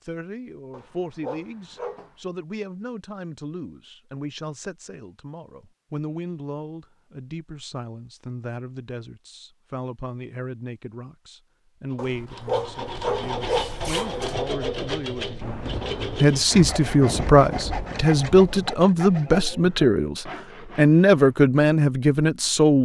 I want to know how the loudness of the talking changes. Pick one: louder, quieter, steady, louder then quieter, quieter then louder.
louder.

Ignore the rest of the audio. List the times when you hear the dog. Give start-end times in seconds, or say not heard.
0.7-2.1, 11.9-14.4.